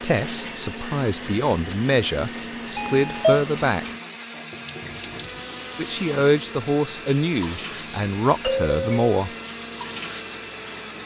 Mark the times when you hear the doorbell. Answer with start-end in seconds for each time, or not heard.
2.8-3.5, 8.4-9.2.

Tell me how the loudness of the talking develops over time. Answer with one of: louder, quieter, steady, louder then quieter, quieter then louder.
steady.